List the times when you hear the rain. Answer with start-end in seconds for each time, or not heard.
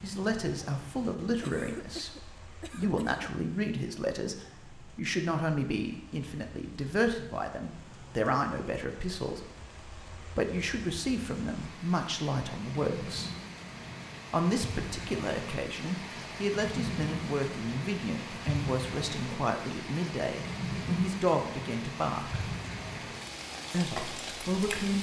0.0-24.9.